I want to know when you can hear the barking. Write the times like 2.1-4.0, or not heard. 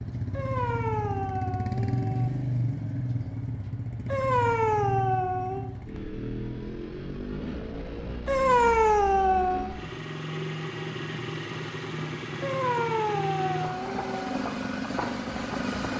0.3-2.3, 4.0-5.7, 8.2-9.8, 12.4-14.3.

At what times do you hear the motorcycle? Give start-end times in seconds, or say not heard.
0.0-15.9.